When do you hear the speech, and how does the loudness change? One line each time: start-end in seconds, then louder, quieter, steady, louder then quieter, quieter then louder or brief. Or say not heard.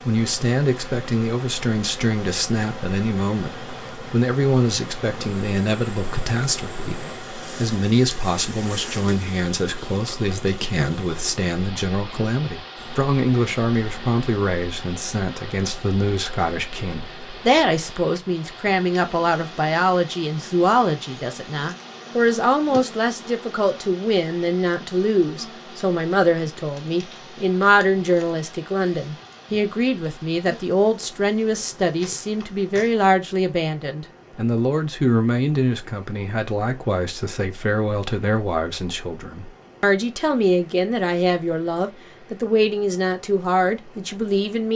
0.1-44.7 steady.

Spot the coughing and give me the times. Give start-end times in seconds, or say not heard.
not heard.